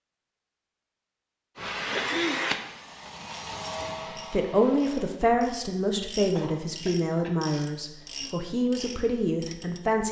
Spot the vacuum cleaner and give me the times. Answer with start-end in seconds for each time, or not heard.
1.6-5.1.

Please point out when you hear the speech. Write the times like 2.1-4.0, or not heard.
4.3-10.0.